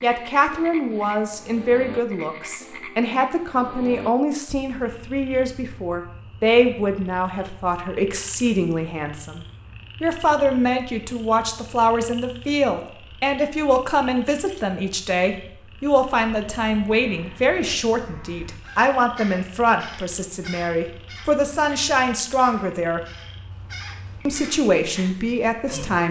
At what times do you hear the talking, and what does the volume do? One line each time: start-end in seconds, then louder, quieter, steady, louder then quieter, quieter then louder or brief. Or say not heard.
0.0-23.0 steady
24.2-26.0 brief.